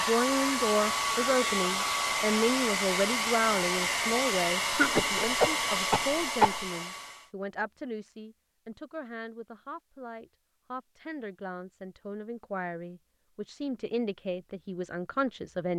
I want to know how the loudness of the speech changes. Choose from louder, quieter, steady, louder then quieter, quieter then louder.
quieter then louder.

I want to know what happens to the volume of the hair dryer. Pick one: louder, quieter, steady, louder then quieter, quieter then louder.
steady.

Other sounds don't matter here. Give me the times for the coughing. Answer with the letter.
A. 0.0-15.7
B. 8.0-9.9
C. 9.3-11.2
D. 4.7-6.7
D.